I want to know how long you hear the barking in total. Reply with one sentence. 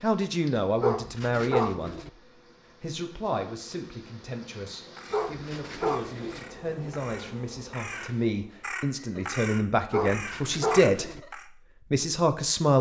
The barking can be heard for 4 seconds in total.